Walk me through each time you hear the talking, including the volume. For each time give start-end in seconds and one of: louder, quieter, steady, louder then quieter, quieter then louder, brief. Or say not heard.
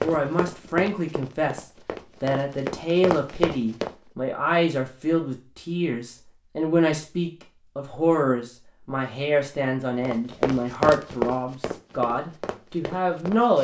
0.0-13.5 steady.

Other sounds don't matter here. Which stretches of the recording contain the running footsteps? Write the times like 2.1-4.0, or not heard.
0.0-4.0, 10.1-13.5.